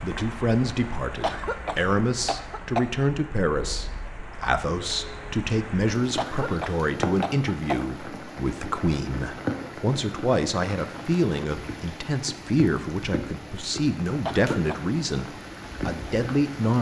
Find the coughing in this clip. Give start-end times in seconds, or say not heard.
1.2-3.0, 6.2-8.0, 14.2-14.8.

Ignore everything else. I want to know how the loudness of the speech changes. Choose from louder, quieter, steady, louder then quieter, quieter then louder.
steady.